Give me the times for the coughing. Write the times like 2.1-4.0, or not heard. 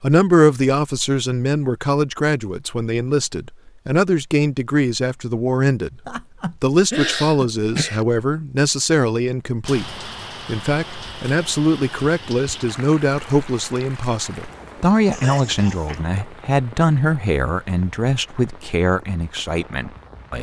6.0-8.1, 15.1-16.1.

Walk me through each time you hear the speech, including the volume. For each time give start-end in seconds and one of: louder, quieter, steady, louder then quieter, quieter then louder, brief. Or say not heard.
0.0-20.3 steady.